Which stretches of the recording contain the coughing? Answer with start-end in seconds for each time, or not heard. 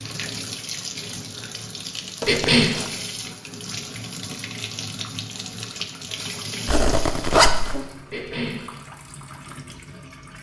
2.2-2.8, 8.1-8.7.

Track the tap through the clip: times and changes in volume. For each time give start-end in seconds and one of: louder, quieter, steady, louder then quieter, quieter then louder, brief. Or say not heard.
0.0-10.3 quieter.